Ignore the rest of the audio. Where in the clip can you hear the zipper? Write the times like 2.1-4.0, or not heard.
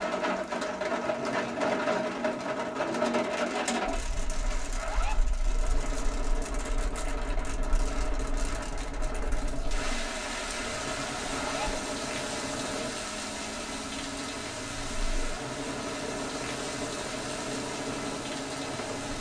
4.7-5.3, 11.2-11.7.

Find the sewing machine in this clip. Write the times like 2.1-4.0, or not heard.
0.0-19.1.